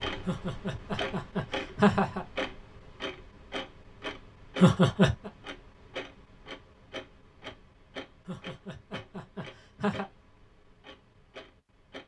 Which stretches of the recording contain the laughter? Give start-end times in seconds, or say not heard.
0.2-2.2, 4.6-5.3, 8.2-10.1.